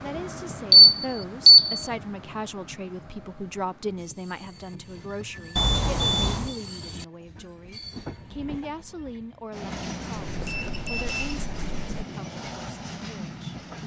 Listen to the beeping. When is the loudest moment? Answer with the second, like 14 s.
1 s.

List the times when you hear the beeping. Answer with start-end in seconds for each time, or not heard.
0.7-1.9, 5.5-6.5, 10.2-12.1.